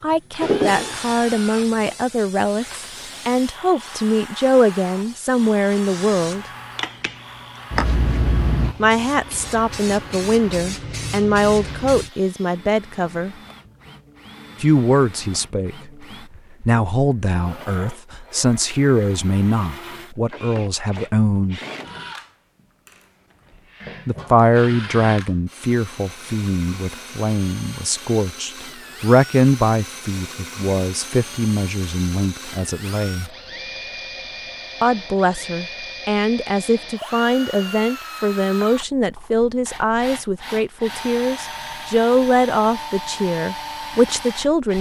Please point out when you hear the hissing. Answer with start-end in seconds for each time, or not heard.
0.4-12.1.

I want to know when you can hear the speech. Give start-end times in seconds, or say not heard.
0.0-6.5, 8.8-13.3, 14.6-16.1, 16.6-21.6, 24.1-33.3, 34.8-44.7.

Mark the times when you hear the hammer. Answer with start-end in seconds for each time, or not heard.
not heard.